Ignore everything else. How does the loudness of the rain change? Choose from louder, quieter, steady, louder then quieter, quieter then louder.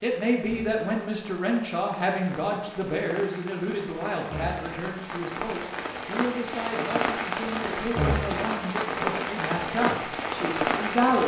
louder.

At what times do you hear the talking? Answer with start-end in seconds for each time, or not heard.
0.0-11.2.